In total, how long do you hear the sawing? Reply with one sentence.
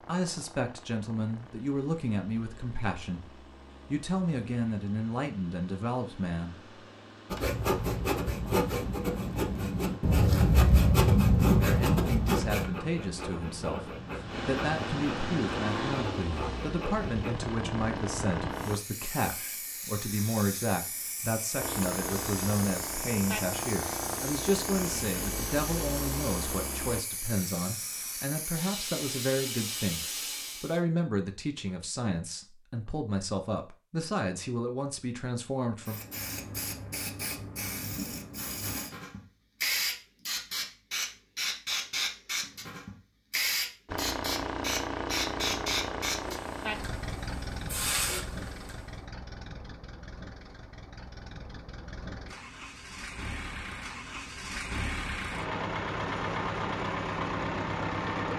The sawing can be heard for 10 seconds in total.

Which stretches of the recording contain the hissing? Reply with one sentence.
You can hear the hissing from 18.6 to 30.8 s and from 35.9 to 48.8 s.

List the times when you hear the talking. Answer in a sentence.
The talking can be heard from 0.0 to 6.7 s and from 11.6 to 36.0 s.